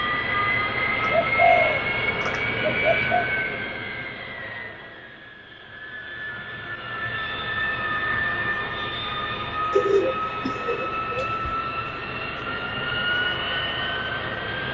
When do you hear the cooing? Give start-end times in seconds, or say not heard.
1.0-3.2, 9.7-11.6.